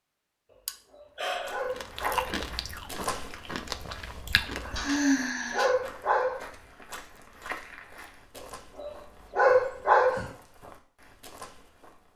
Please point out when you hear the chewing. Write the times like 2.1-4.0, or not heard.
1.7-5.2.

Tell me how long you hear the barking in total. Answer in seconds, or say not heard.
5 s.